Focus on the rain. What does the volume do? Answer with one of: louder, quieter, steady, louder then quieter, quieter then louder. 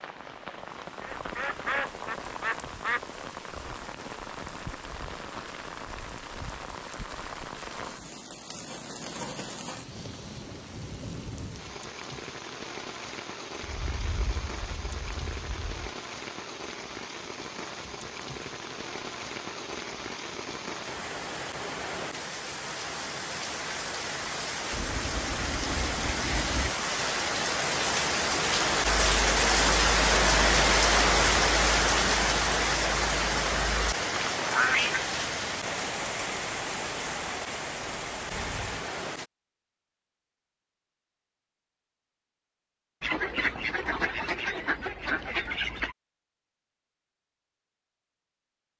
louder.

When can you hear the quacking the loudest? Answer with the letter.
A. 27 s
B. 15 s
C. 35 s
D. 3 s
C.